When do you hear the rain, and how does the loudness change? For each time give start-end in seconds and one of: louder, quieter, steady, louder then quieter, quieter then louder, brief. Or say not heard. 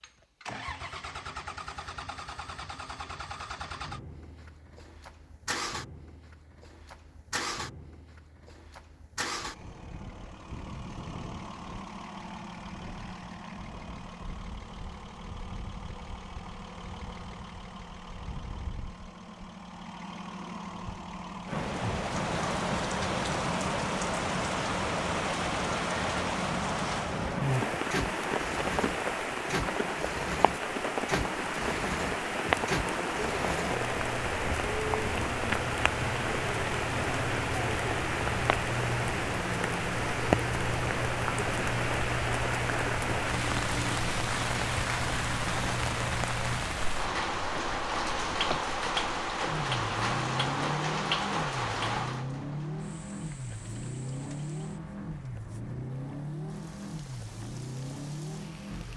21.4-58.9 quieter.